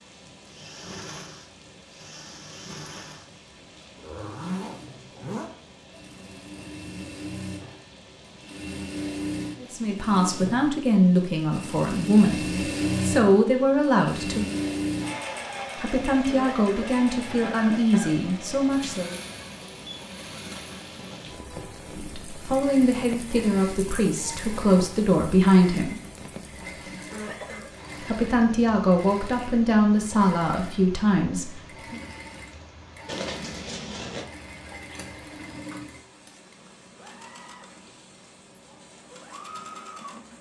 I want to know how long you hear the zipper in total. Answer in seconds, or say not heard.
3 s.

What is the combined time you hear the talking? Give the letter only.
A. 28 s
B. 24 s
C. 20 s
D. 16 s
D.